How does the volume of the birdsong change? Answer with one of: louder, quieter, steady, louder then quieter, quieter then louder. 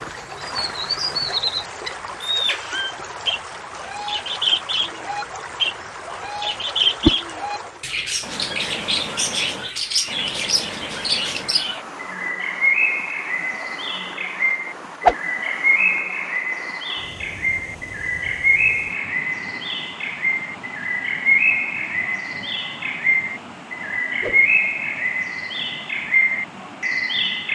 steady.